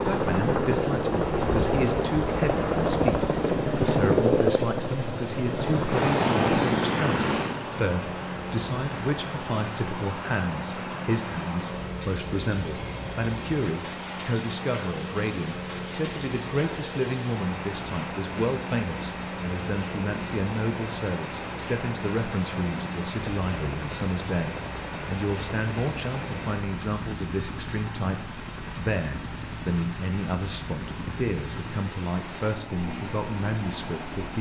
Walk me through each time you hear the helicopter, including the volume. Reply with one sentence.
You can hear the helicopter from 0.0 to 34.3 s, getting quieter.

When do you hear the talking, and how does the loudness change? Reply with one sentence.
You can hear the talking from 0.0 to 34.3 s, at a steady volume.